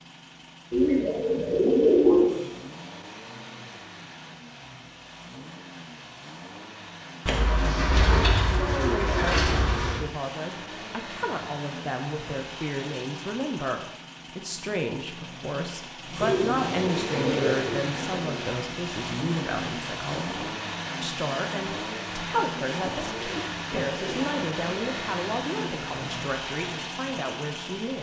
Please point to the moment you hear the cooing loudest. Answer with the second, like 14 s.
2 s.